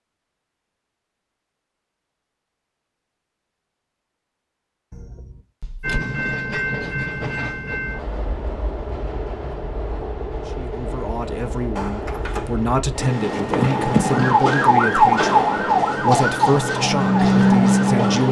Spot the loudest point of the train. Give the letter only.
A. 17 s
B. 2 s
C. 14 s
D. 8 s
C.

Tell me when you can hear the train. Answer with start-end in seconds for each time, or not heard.
5.8-18.2.